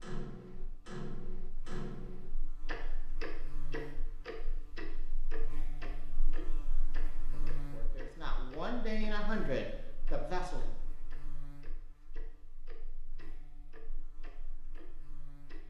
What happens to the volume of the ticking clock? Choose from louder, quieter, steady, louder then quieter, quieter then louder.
quieter.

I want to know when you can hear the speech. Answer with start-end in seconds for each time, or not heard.
7.3-10.8.